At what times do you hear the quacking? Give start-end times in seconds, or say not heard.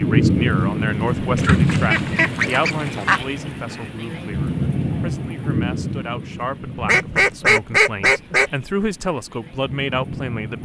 1.4-3.2, 6.8-8.5.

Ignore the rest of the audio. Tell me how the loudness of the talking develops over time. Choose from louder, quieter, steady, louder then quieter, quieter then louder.
quieter then louder.